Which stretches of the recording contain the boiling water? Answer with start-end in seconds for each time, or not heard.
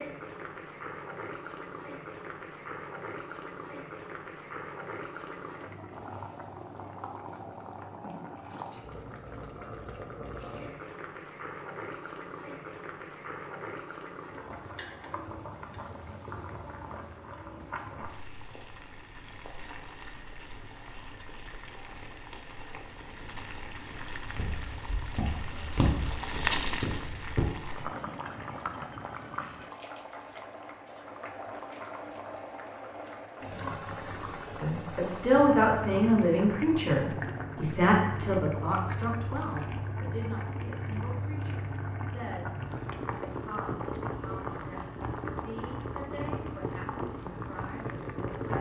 0.0-48.5.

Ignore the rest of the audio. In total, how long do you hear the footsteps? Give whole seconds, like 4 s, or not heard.
3 s.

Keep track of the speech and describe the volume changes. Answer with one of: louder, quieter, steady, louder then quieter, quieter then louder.
quieter.